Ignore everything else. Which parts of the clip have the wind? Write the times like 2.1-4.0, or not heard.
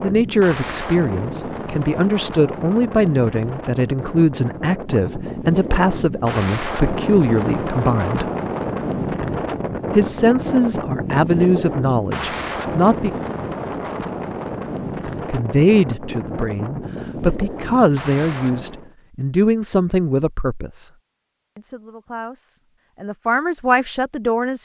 0.0-18.9.